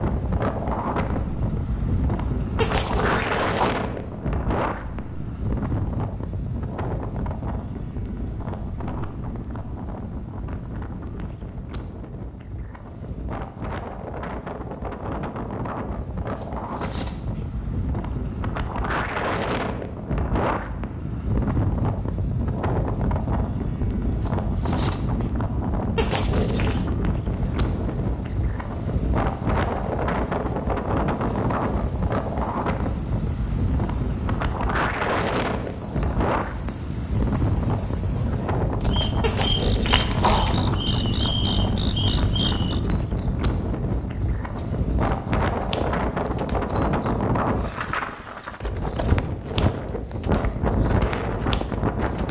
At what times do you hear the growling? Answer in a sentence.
You can hear the growling from 2.6 to 3.8 s, from 25.9 to 26.9 s and from 39.2 to 40.6 s.